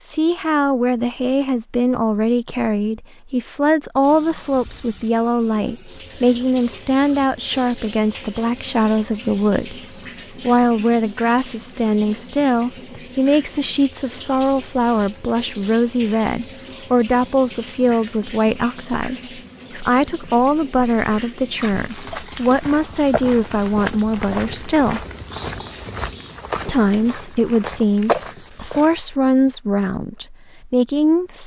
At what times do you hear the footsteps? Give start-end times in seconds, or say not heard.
21.6-29.0.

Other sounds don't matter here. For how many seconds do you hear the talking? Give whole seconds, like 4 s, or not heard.
30 s.